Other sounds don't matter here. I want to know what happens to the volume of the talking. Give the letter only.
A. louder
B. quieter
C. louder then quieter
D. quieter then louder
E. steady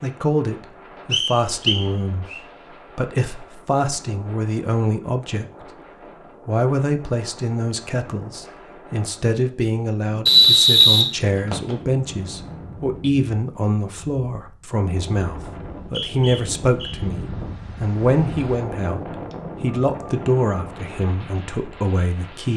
E.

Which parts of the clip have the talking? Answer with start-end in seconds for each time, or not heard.
0.0-5.8, 6.5-22.5.